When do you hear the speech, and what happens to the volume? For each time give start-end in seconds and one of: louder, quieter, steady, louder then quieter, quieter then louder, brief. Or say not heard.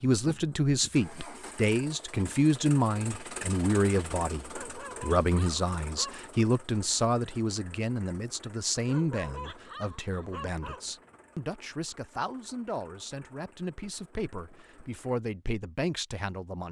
0.0-16.6 quieter.